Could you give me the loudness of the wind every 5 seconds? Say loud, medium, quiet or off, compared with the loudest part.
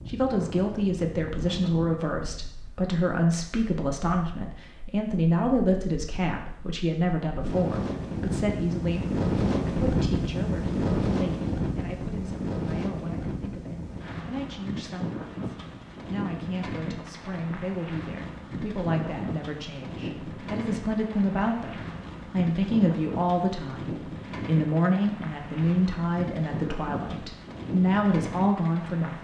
quiet, loud, loud, medium, medium, medium.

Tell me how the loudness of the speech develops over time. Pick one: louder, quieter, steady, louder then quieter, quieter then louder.
quieter then louder.